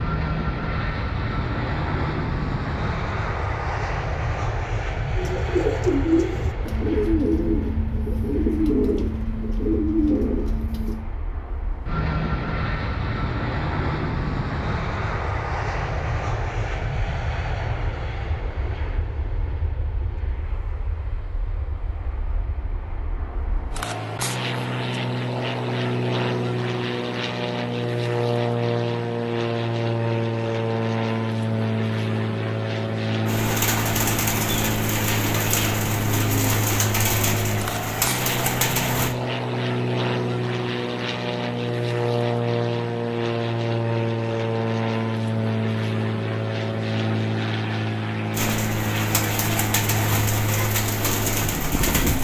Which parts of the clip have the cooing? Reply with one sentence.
You can hear the cooing from 5.2 to 11.0 s, from 33.2 to 39.1 s and from 48.3 to 52.1 s.